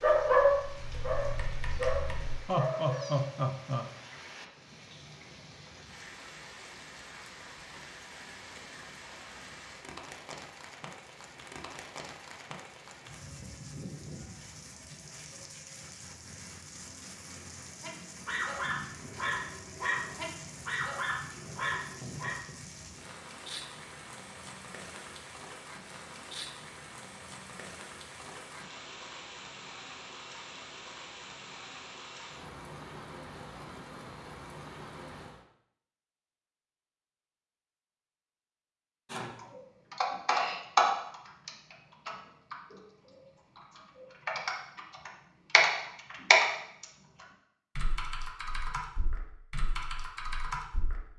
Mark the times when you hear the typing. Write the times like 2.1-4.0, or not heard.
0.0-2.4, 39.1-42.8, 43.5-51.0.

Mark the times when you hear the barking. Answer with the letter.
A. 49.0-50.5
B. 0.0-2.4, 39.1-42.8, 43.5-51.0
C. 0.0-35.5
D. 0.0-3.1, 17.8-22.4
D.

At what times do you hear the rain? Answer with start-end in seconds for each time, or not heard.
0.0-35.5.